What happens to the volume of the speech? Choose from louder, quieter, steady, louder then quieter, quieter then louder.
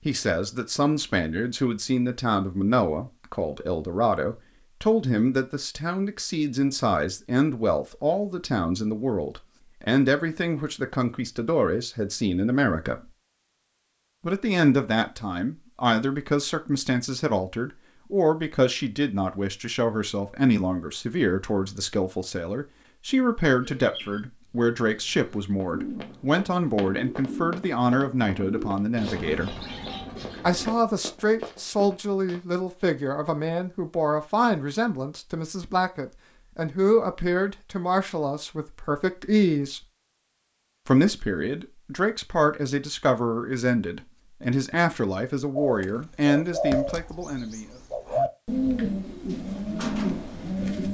steady.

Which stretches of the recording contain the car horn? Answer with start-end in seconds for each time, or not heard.
not heard.